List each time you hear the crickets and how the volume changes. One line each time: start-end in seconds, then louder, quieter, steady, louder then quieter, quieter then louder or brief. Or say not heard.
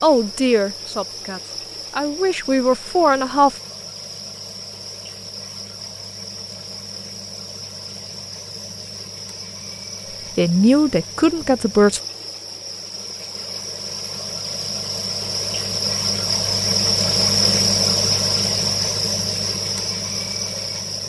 0.0-21.0 louder.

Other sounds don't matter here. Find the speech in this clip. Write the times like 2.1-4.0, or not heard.
0.0-3.5, 10.3-12.0.